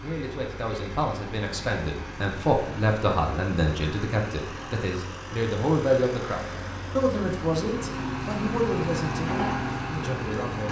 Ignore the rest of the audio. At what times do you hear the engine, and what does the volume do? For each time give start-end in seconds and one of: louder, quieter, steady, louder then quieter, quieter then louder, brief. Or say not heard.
0.0-10.6 louder.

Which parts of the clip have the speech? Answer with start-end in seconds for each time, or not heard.
0.0-10.6.